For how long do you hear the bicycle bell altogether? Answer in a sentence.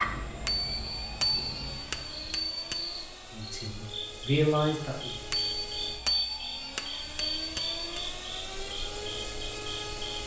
The bicycle bell can be heard for 5 seconds in total.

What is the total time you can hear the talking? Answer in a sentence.
You can hear the talking for 2 seconds altogether.